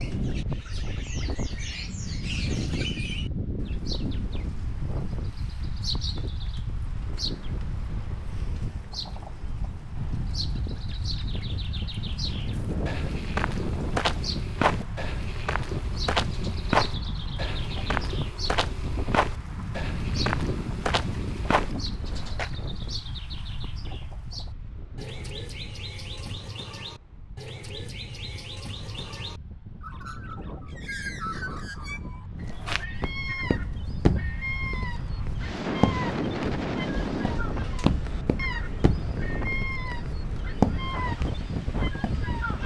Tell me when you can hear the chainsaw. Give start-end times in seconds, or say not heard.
not heard.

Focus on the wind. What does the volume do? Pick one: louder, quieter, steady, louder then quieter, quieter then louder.
quieter then louder.